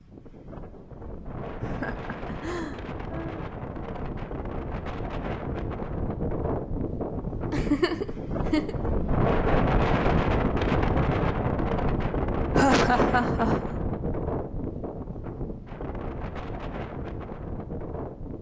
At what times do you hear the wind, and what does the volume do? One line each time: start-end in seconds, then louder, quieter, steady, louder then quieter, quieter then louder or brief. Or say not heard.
0.0-18.3 louder then quieter.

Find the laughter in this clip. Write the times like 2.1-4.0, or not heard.
1.6-3.5, 7.5-8.8, 12.5-13.8.